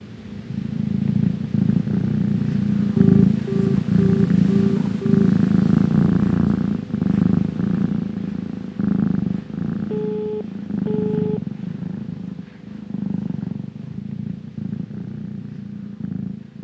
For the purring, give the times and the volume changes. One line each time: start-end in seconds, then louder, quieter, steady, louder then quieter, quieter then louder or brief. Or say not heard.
0.0-16.6 quieter.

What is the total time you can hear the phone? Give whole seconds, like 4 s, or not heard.
4 s.